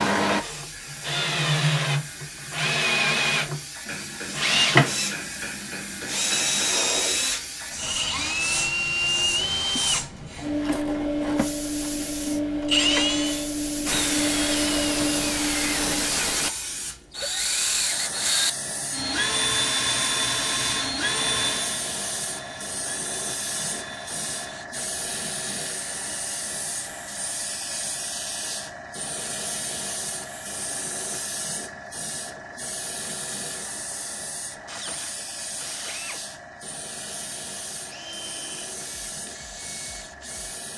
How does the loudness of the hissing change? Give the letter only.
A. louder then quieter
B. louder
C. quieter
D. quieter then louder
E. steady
A.